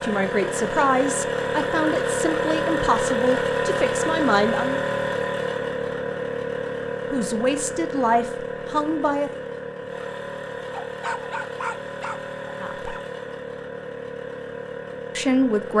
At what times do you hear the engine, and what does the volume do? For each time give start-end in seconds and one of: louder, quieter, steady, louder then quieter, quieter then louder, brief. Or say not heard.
0.0-15.7 quieter.